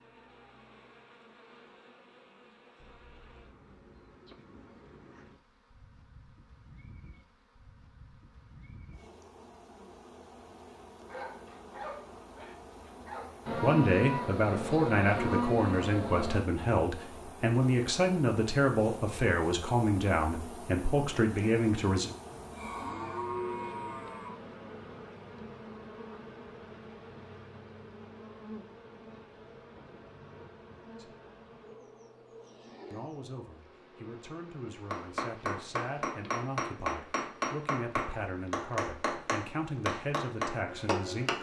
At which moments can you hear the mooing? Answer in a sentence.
You can hear the mooing from 13.4 to 16.4 s and from 22.3 to 24.3 s.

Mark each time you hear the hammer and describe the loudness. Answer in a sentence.
You can hear the hammer from 34.9 to 41.3 s, at a steady volume.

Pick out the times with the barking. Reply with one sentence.
The barking can be heard from 11.1 to 13.5 s.